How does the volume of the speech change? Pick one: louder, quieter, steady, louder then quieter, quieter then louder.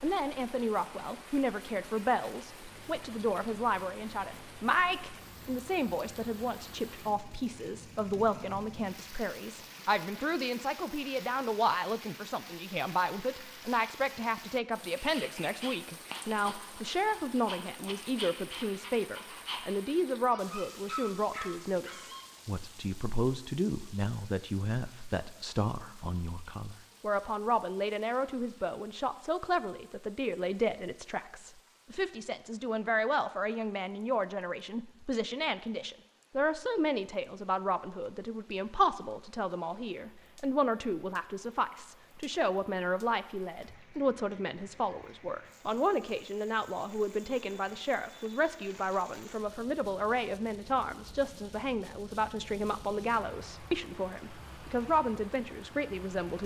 steady.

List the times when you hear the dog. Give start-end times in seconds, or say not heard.
14.9-22.4.